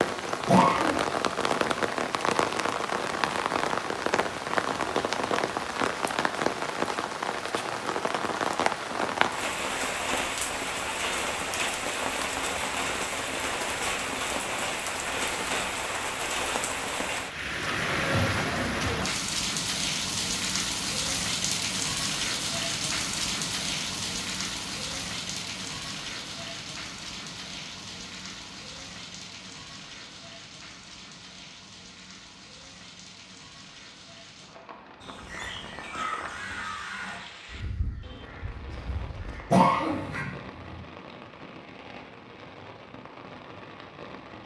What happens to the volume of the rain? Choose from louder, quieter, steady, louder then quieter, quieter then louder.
quieter.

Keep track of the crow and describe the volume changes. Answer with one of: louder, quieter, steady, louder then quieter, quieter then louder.
quieter.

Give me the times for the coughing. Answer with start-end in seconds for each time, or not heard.
0.5-0.9, 39.5-40.8.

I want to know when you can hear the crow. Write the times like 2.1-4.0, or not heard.
35.0-40.2.